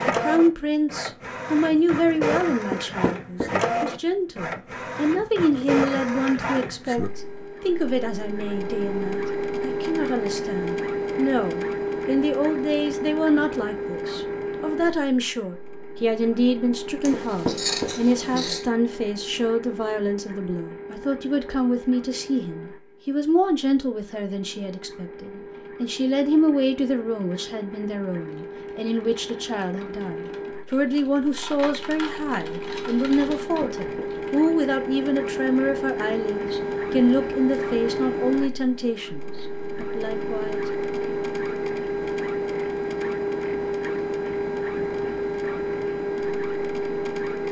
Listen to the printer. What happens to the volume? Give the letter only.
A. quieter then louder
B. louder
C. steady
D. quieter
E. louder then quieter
A.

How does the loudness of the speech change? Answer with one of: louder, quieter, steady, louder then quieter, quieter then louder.
steady.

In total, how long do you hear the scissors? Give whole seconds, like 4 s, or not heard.
2 s.